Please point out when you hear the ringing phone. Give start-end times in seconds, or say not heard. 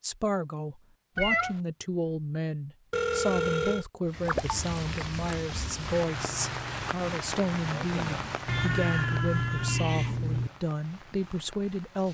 2.9-3.9.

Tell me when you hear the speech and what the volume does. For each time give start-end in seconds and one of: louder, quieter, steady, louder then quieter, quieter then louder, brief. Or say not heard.
0.0-12.0 steady.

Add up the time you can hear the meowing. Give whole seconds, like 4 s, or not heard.
3 s.